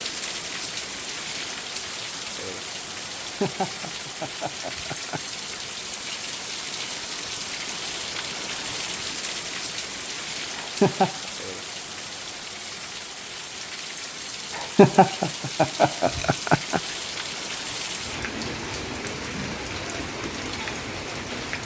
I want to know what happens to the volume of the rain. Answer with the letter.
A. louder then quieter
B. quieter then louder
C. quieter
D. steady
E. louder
D.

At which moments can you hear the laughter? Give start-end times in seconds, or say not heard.
3.2-5.4, 10.6-11.3, 14.6-16.8.